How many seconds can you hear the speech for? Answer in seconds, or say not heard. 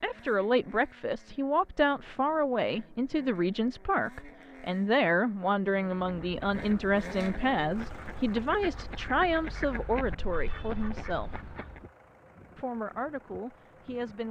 13 s.